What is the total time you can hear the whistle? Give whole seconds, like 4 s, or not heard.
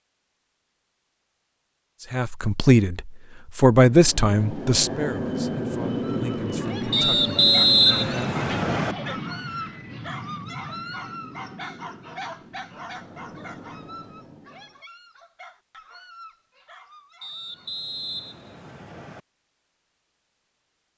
4 s.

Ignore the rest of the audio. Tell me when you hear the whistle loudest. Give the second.
8 s.